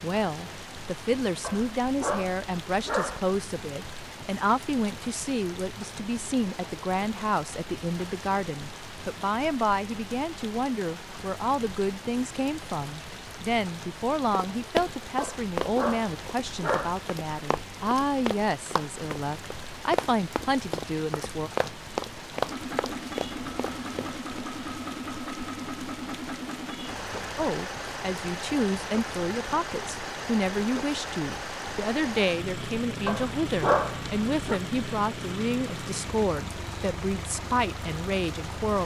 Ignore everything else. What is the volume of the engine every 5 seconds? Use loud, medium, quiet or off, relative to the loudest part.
off, off, off, off, loud, loud, loud, loud.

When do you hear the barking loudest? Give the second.
34 s.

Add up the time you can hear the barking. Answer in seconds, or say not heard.
5 s.